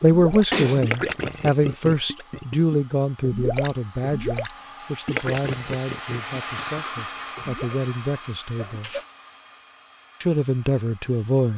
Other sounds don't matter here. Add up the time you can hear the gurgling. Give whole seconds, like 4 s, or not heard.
8 s.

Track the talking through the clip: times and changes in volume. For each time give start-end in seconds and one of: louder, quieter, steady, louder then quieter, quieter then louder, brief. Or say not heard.
0.0-8.9 quieter
10.2-11.5 brief.